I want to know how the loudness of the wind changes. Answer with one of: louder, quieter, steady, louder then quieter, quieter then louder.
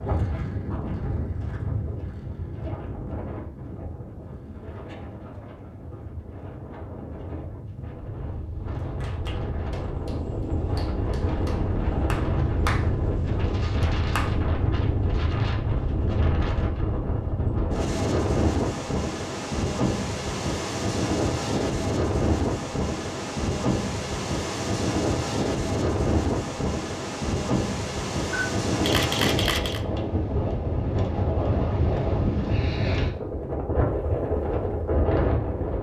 louder.